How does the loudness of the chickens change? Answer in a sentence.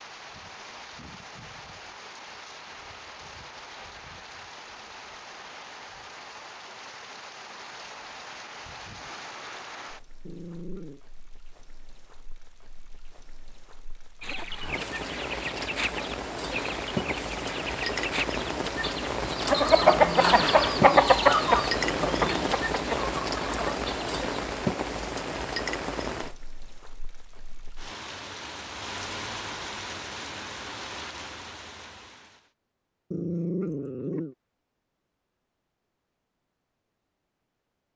The loudness of the chickens goes up, then down.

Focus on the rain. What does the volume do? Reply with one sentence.
The loudness of the rain goes up, then down.